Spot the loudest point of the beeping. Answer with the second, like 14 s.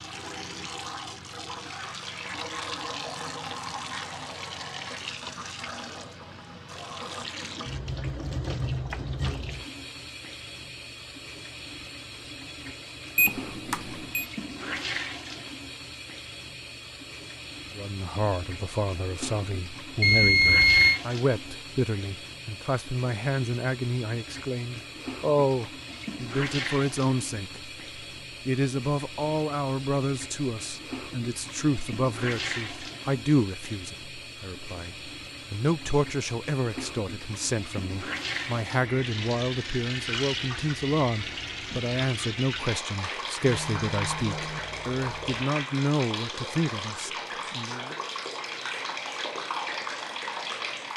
21 s.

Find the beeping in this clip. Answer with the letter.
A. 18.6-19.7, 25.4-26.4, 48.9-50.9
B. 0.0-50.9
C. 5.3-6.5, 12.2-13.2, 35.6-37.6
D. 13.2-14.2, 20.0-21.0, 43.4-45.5
D.